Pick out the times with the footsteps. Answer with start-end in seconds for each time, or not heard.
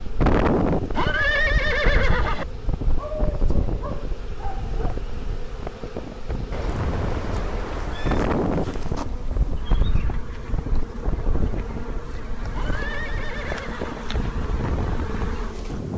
not heard.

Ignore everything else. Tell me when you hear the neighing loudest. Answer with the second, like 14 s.
1 s.